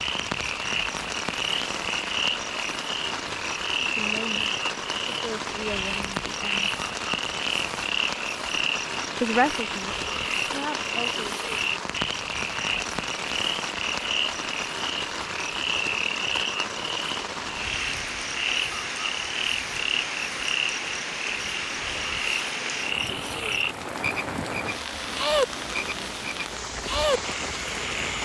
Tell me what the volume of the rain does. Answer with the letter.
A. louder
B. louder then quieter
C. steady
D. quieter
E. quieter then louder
C.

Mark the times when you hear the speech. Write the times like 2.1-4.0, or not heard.
3.8-6.7, 9.2-11.2.